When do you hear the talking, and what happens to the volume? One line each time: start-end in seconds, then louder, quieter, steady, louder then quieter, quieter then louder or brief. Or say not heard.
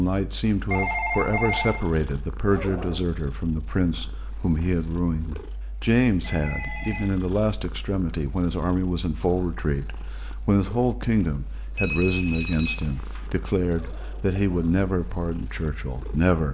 0.0-16.4 steady.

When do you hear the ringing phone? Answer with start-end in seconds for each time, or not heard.
0.7-1.9, 6.2-7.1, 11.8-13.2.